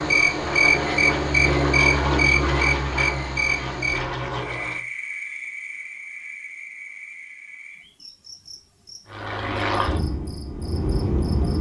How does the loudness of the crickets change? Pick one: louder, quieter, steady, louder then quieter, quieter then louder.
quieter.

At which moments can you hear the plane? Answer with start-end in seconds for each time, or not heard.
0.0-4.8, 9.1-11.5.